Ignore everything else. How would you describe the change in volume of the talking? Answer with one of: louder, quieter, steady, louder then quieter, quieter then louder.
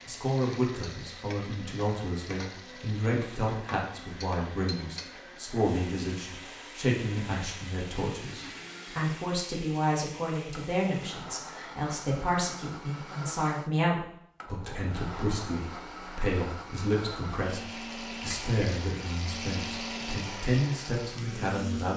steady.